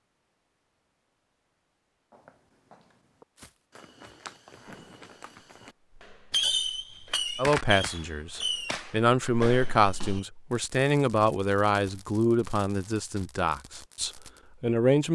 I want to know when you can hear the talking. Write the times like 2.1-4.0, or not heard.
7.3-15.1.